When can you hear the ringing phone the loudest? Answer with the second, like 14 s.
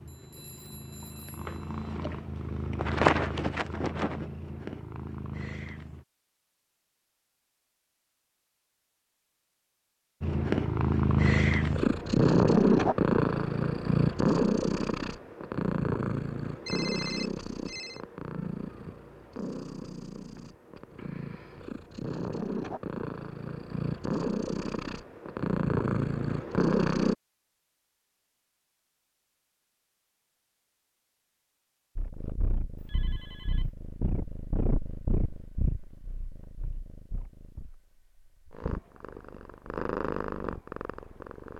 17 s.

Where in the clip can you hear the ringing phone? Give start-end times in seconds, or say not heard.
0.1-1.9, 16.6-18.0, 32.8-33.8.